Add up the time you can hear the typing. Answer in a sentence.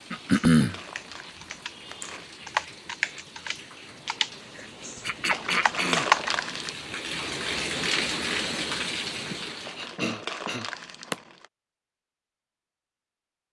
You can hear the typing for 6 seconds altogether.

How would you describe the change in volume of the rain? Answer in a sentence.
The volume of the rain goes up.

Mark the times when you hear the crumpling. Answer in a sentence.
You can hear the crumpling from 0.1 to 2.2 s, from 5.3 to 6.8 s and from 9.6 to 11.4 s.